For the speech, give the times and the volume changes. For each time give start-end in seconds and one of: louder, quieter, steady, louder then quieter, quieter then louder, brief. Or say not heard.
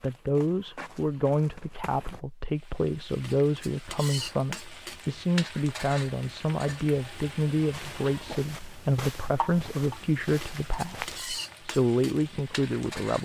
0.0-13.2 steady.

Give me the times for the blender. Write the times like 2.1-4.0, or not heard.
not heard.